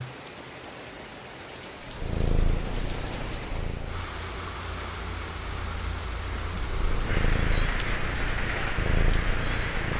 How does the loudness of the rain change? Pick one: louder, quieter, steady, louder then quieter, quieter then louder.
louder.